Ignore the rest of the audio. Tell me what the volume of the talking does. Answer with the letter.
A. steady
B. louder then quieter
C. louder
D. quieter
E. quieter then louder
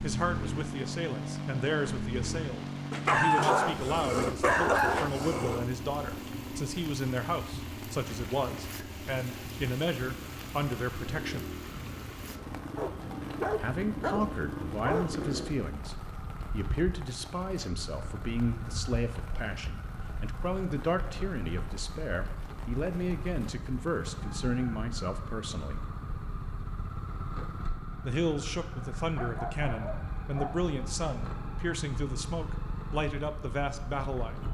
A.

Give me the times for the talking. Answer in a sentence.
You can hear the talking from 0.0 to 11.5 s, from 13.6 to 25.8 s and from 28.1 to 34.4 s.